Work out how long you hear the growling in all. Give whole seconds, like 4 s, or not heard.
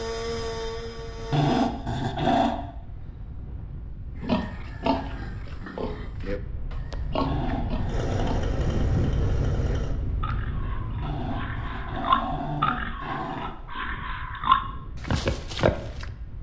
5 s.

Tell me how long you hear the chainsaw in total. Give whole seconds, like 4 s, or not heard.
4 s.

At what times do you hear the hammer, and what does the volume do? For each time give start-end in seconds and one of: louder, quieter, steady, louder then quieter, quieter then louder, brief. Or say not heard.
not heard.